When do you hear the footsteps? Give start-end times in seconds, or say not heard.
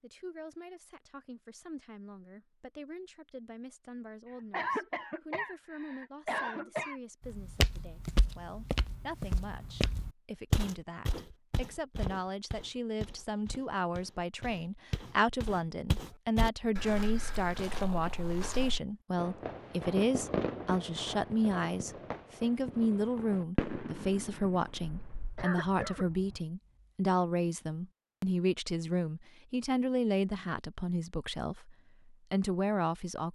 7.2-18.8.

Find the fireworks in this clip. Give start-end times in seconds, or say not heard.
19.1-26.4.